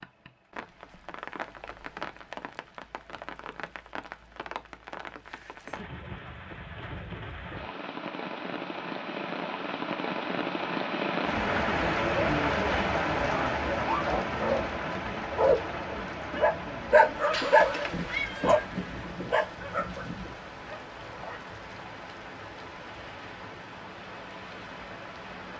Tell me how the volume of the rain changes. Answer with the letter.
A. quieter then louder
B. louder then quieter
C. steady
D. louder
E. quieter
B.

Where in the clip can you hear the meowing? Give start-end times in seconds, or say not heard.
17.3-18.6.